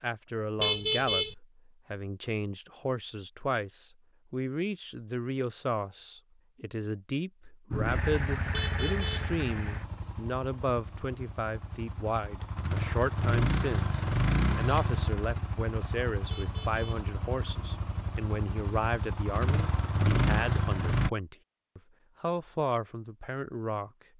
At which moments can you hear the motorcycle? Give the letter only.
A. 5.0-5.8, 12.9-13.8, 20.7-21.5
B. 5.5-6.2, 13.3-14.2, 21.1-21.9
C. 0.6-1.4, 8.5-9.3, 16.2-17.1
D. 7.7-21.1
D.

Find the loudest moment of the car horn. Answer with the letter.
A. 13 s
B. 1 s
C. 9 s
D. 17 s
B.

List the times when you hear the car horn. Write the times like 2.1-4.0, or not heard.
0.6-1.4, 8.5-9.3, 16.2-17.1.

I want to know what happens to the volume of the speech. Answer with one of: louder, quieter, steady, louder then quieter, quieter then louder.
steady.